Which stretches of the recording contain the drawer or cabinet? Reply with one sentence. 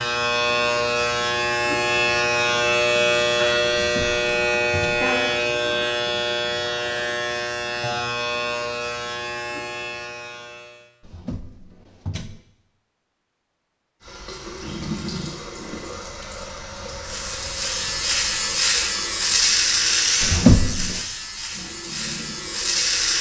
You can hear the drawer or cabinet from 3.8 to 5.1 s, from 11.0 to 12.4 s and from 20.2 to 21.0 s.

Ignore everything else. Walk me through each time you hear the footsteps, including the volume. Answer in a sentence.
The footsteps can't be heard in this clip.